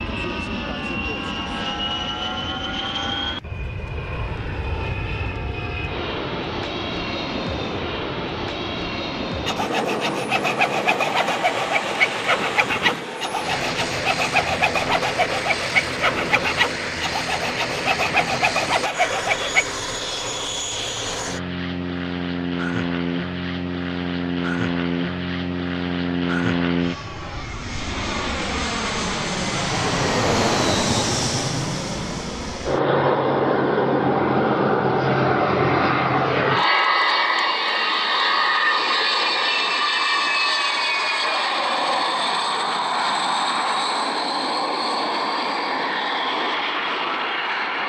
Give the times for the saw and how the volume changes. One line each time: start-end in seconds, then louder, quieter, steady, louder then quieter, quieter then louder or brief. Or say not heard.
9.4-19.8 steady.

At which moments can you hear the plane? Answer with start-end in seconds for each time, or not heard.
0.0-47.8.